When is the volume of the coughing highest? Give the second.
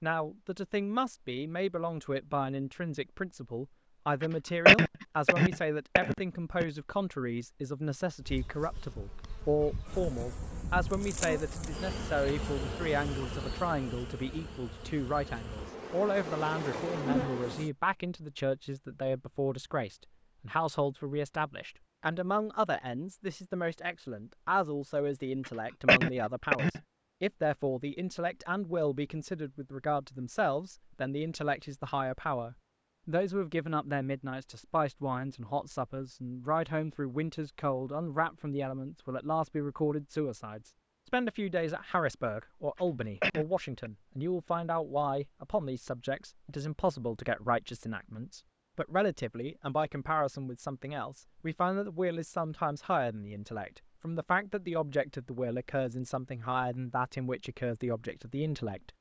5 s.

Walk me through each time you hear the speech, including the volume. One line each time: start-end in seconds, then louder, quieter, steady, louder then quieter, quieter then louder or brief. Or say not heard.
0.0-58.9 steady.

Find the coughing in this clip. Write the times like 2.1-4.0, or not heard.
4.2-6.7, 25.4-26.8, 42.8-43.9.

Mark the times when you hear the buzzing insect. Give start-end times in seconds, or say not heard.
8.2-17.7.